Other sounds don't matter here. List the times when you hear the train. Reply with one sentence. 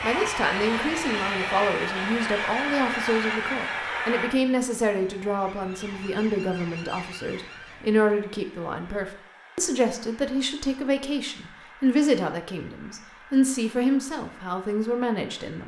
You can hear the train from 0.0 to 15.6 s.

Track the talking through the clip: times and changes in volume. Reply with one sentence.
The talking can be heard from 0.0 to 15.6 s, at a steady volume.